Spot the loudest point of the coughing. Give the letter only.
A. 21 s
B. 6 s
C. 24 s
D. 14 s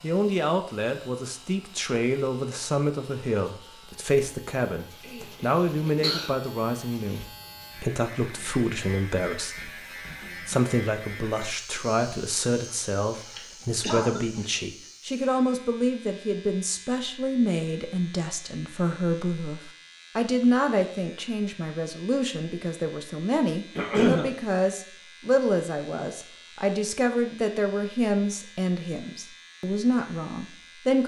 C.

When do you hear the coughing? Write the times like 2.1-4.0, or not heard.
5.0-6.3, 12.7-14.5, 23.8-24.3.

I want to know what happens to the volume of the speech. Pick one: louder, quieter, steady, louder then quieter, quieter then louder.
steady.